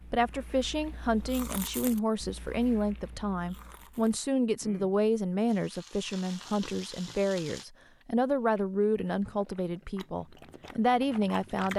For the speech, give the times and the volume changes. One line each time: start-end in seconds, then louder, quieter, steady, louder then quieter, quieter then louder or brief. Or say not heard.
0.1-11.7 steady.